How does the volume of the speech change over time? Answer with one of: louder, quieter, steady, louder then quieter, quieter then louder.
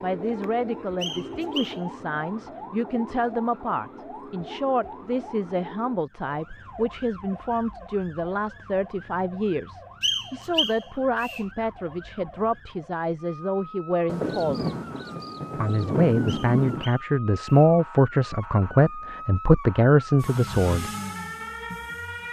louder.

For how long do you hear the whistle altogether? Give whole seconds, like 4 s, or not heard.
4 s.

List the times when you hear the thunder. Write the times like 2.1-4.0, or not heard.
14.1-16.9.